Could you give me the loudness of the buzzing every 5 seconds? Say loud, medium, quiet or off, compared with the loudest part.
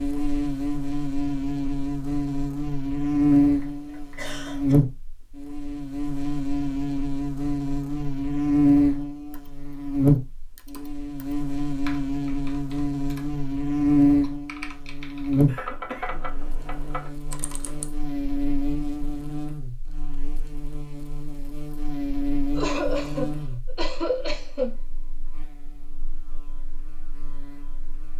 loud, loud, loud, medium, medium, quiet.